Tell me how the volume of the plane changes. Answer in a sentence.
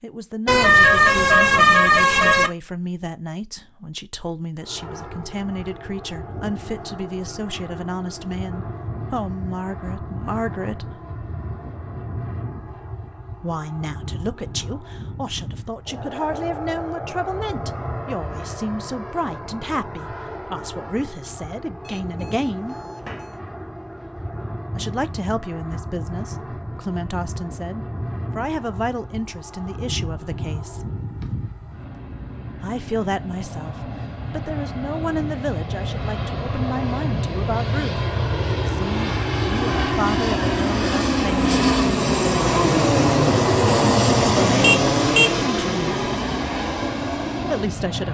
The volume of the plane goes up.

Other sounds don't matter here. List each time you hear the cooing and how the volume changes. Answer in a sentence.
You can't hear the cooing here.